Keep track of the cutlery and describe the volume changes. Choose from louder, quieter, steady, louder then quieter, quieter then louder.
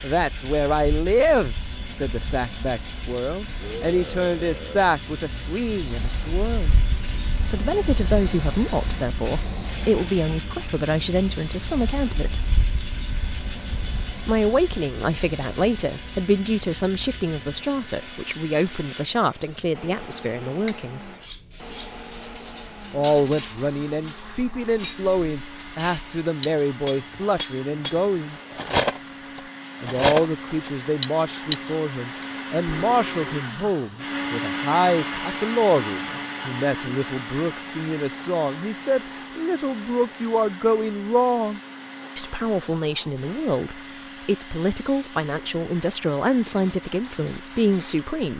louder.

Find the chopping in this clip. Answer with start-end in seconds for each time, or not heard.
not heard.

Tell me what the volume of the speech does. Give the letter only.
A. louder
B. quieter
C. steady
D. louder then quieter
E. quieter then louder
C.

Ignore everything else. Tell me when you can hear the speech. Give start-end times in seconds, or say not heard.
0.0-6.8, 7.5-12.5, 14.2-21.1, 22.9-28.4, 29.8-48.3.